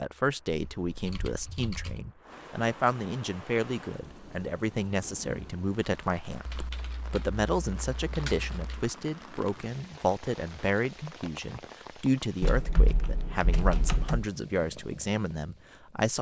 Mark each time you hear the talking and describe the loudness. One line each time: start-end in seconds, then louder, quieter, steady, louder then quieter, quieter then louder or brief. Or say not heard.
0.0-16.1 steady.